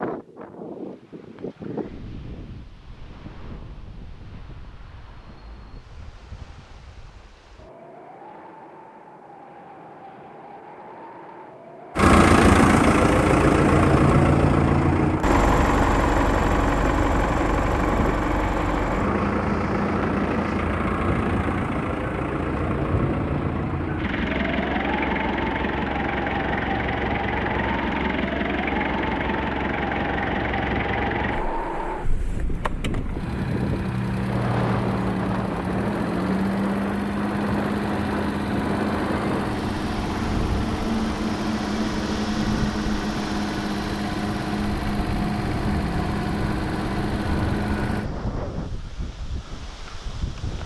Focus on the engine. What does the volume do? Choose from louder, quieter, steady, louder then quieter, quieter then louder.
quieter.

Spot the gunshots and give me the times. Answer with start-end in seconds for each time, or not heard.
not heard.